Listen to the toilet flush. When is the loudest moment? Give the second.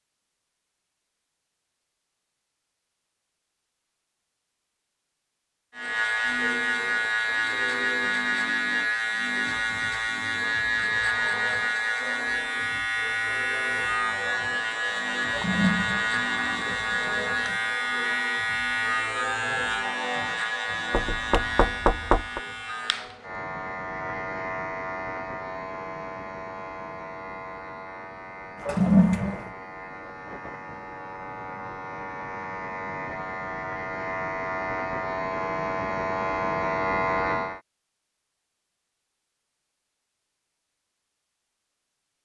29 s.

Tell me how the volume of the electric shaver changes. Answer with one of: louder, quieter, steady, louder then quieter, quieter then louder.
quieter then louder.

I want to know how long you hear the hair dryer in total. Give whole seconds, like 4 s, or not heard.
not heard.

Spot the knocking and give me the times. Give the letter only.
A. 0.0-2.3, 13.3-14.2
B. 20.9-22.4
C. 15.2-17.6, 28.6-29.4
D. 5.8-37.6
B.